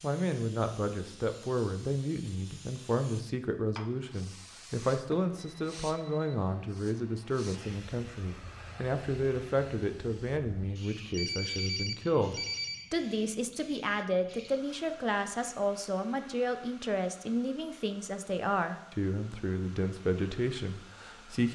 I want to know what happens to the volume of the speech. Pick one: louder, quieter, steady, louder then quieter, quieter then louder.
steady.